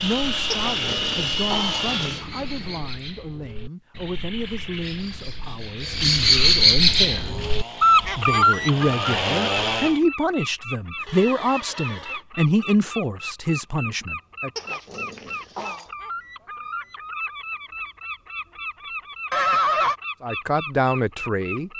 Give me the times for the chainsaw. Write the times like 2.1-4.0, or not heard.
0.0-2.2, 6.8-10.0.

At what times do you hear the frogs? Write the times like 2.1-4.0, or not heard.
not heard.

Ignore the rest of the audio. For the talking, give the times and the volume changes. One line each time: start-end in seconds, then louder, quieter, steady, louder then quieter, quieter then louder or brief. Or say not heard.
0.0-14.5 louder
20.2-21.7 brief.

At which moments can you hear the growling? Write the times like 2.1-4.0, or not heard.
0.5-2.2, 14.6-15.9.